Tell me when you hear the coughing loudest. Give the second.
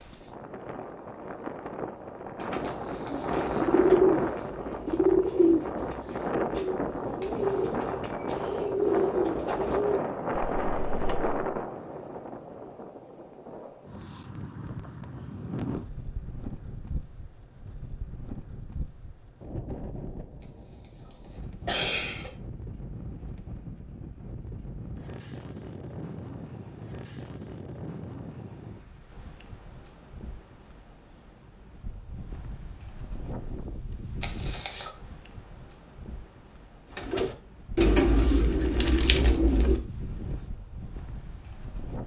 22 s.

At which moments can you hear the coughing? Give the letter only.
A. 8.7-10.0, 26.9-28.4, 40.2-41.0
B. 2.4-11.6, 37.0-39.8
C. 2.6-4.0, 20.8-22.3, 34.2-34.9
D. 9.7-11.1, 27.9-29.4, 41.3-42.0
C.